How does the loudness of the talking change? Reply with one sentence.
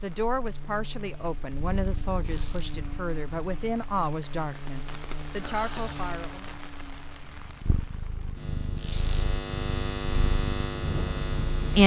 The loudness of the talking stays about the same.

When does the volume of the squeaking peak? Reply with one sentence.
The volume of the squeaking peaks at 9 seconds.